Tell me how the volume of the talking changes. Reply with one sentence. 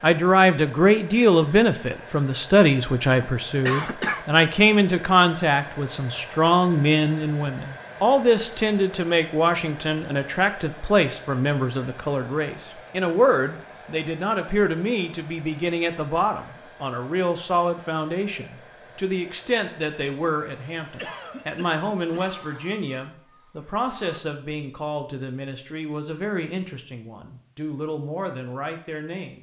The volume of the talking goes down.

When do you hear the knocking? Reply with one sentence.
You can't hear the knocking here.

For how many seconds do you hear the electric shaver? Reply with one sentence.
The electric shaver can't be heard in this clip.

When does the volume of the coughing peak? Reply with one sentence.
The volume of the coughing peaks at 4 seconds.